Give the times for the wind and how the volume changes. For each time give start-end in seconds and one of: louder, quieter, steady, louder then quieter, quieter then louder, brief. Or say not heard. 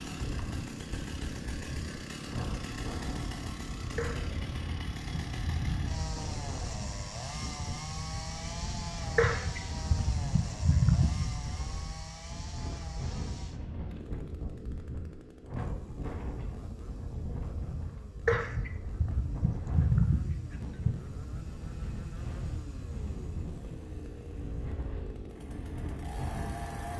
0.1-26.9 steady.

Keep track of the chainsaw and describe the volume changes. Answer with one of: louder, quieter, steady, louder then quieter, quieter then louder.
quieter then louder.